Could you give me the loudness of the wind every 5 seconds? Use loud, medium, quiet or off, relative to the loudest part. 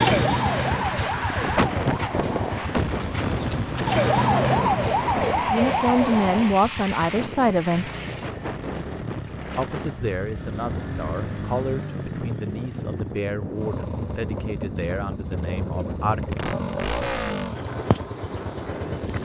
loud, medium, medium, medium.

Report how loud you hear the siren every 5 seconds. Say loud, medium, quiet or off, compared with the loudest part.
loud, loud, off, off.